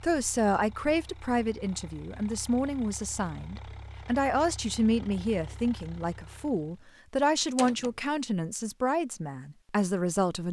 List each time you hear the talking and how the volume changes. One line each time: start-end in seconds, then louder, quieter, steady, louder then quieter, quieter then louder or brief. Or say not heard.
0.0-10.4 steady.